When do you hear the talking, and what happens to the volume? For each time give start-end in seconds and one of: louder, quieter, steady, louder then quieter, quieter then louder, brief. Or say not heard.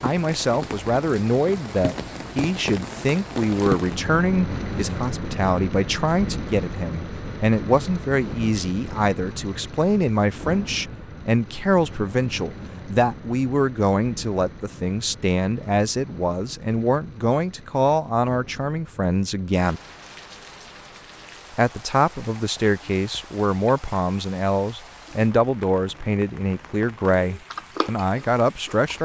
0.0-19.8 steady
21.5-29.0 steady.